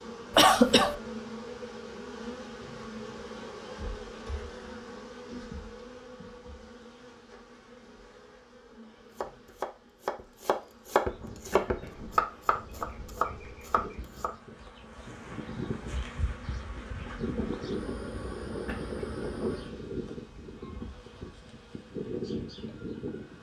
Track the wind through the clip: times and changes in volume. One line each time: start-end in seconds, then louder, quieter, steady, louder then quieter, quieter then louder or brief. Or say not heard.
11.1-23.3 louder.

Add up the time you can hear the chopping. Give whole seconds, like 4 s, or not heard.
5 s.